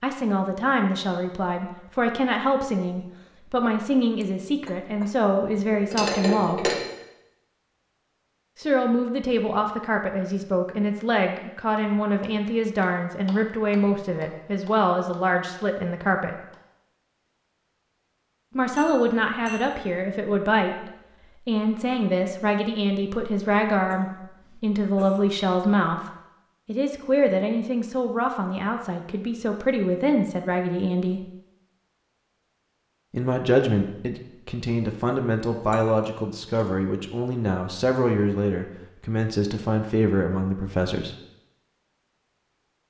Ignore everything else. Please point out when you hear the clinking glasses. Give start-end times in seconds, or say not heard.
5.7-6.9, 18.8-20.0, 35.6-36.7.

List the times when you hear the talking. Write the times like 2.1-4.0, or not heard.
0.0-6.7, 8.6-16.4, 18.6-26.0, 26.6-31.2, 33.1-41.1.